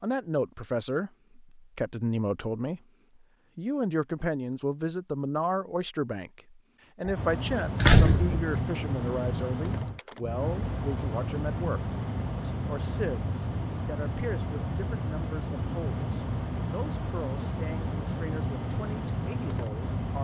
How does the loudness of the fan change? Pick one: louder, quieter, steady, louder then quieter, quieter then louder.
steady.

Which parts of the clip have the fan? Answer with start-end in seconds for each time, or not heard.
7.2-20.1.